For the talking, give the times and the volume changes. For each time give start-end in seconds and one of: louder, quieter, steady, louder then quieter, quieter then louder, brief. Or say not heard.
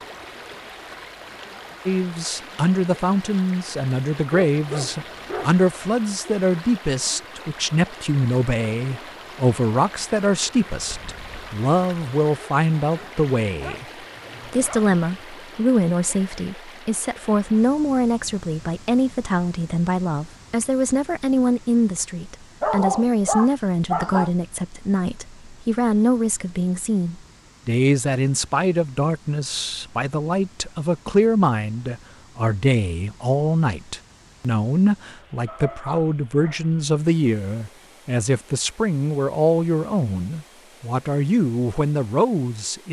1.9-13.8 steady
14.4-42.8 steady.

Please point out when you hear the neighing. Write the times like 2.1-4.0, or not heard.
not heard.